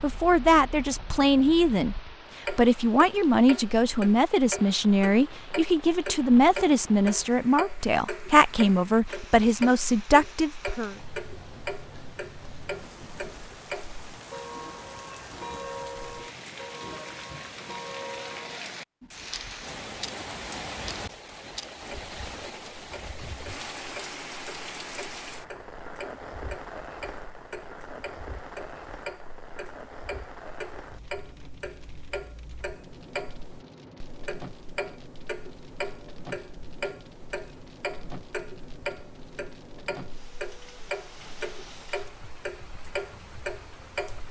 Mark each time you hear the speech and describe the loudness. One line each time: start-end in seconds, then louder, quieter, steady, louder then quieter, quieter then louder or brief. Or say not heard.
0.0-10.9 steady.